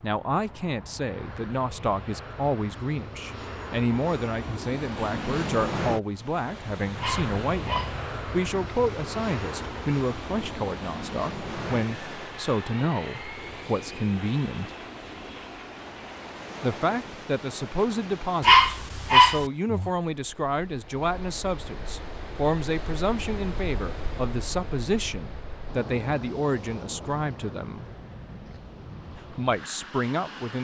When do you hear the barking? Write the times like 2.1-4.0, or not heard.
7.0-8.1, 18.4-19.4.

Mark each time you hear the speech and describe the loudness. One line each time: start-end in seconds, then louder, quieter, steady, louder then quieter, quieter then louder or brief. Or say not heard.
0.0-14.7 steady
16.6-27.9 steady
29.1-30.5 brief.